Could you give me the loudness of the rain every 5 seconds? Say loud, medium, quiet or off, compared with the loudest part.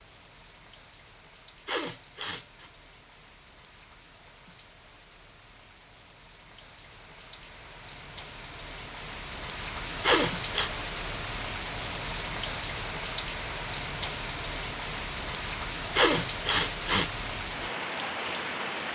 quiet, medium, loud, loud.